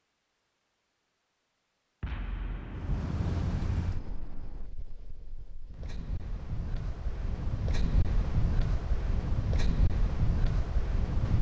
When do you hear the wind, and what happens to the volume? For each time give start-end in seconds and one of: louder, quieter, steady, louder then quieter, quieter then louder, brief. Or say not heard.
2.7-11.3 quieter then louder.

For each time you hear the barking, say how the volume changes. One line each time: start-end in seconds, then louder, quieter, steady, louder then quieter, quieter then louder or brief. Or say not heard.
not heard.